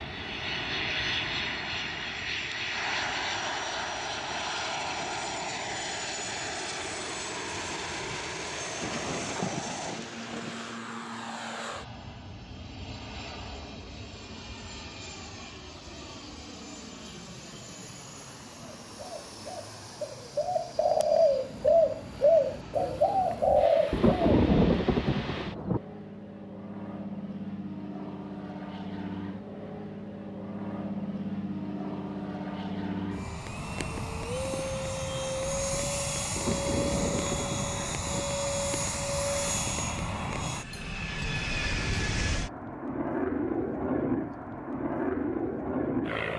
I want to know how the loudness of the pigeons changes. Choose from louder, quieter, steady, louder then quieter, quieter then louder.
louder.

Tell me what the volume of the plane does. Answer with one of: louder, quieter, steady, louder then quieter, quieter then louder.
quieter then louder.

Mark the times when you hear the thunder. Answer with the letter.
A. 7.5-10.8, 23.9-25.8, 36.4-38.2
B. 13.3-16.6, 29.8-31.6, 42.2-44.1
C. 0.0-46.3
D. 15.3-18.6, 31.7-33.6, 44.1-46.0
A.